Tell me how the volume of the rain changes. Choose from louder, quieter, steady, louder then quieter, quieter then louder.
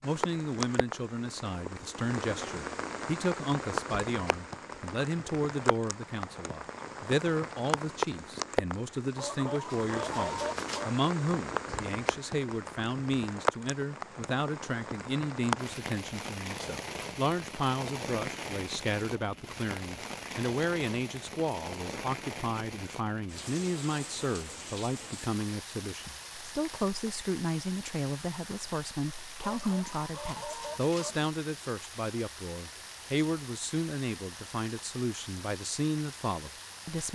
quieter.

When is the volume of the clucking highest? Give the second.
10 s.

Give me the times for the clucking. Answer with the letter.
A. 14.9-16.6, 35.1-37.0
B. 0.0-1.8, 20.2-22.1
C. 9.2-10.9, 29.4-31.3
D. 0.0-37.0
C.